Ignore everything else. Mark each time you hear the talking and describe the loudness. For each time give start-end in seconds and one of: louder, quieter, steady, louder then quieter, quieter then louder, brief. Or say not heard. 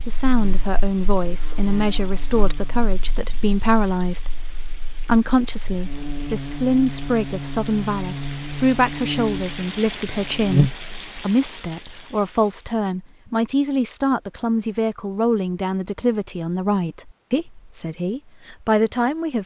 0.1-19.4 steady.